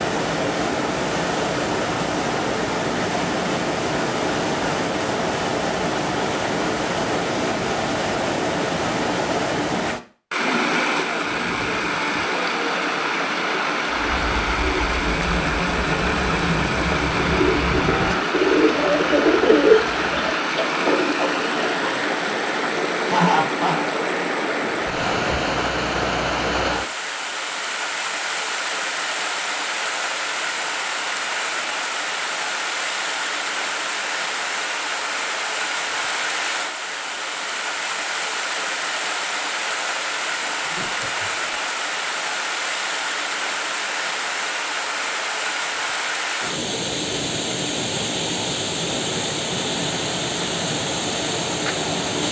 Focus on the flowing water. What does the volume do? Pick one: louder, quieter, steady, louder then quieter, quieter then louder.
steady.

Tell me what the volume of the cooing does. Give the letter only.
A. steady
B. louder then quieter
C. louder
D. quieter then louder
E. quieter
B.